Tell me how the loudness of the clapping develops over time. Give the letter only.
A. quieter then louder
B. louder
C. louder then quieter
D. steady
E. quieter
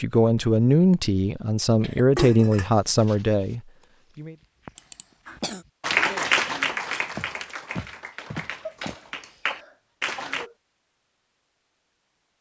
A.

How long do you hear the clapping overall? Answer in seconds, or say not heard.
5 s.